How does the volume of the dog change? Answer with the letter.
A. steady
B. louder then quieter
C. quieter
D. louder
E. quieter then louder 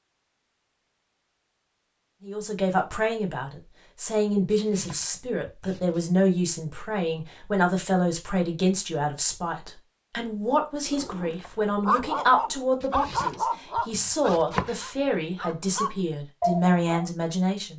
E.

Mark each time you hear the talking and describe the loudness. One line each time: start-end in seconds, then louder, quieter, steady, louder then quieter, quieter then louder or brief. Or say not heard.
2.2-17.7 steady.